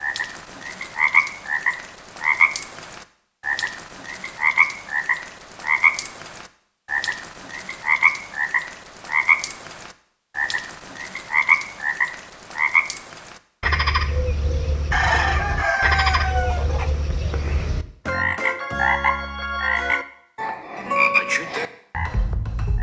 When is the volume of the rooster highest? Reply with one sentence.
The volume of the rooster peaks at 15 seconds.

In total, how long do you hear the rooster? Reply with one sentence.
The rooster can be heard for 2 seconds in total.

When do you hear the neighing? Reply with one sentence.
The neighing can't be heard in this clip.